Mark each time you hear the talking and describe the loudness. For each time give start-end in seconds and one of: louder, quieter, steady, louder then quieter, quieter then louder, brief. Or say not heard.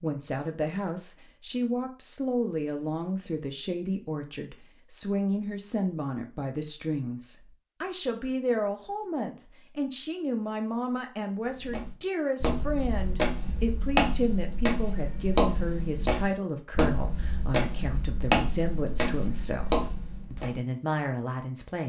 0.0-21.8 steady.